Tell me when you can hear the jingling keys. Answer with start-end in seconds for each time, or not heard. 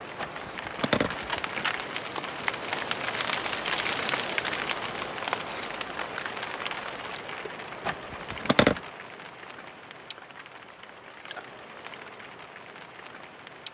0.1-1.8, 7.8-8.8.